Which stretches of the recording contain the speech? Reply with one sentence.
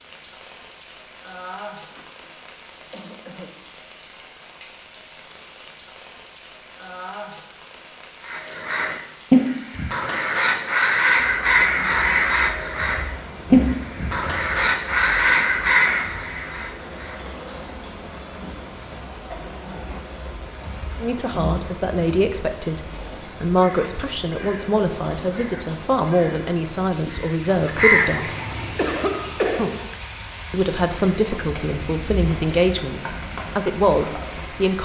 The speech can be heard from 21.0 to 28.3 s and from 30.5 to 34.8 s.